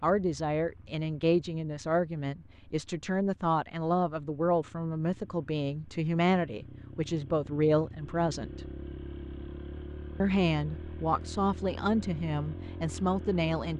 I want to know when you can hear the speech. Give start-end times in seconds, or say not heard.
0.0-8.6, 10.2-13.7.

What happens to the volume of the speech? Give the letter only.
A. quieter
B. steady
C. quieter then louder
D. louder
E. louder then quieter
B.